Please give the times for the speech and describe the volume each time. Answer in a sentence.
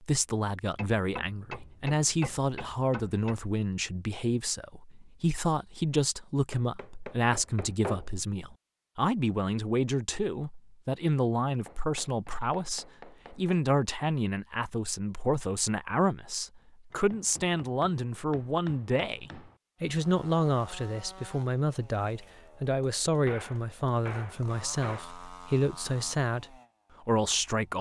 The speech can be heard from 0.0 to 27.7 s, at a steady volume.